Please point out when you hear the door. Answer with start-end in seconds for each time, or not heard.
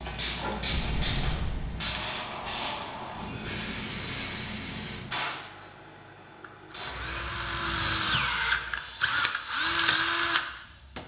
0.7-1.7.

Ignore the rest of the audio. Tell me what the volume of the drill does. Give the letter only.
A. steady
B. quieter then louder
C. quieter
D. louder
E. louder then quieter
D.